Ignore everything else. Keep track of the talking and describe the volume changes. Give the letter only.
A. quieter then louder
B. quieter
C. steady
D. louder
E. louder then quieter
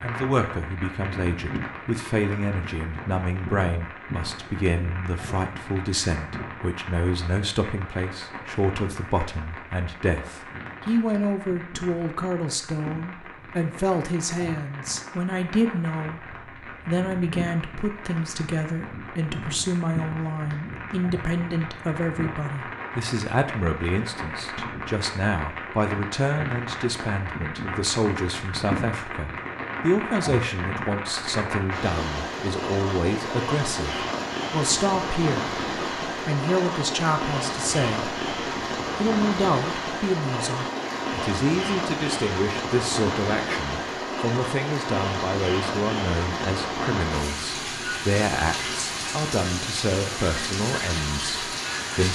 C.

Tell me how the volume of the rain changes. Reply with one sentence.
The loudness of the rain goes up.